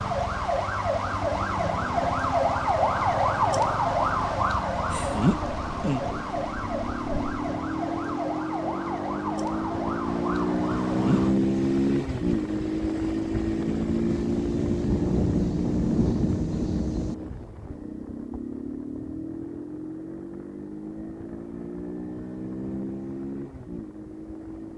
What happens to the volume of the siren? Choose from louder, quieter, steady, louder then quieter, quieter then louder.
quieter.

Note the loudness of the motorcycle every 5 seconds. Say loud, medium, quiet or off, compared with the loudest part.
quiet, medium, loud, medium, medium.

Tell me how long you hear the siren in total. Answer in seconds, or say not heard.
11 s.